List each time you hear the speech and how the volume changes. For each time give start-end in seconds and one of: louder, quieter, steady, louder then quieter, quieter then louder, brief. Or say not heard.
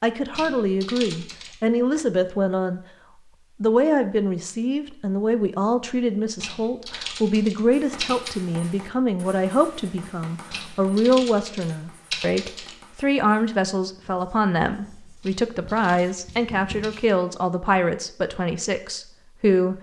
0.0-2.8 brief
3.6-19.7 steady.